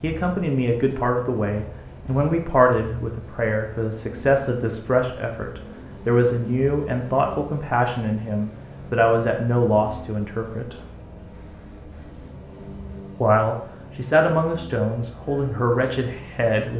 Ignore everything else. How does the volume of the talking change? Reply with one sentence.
The loudness of the talking stays about the same.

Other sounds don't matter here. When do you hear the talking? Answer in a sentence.
The talking can be heard from 0.0 to 10.8 s and from 13.2 to 16.7 s.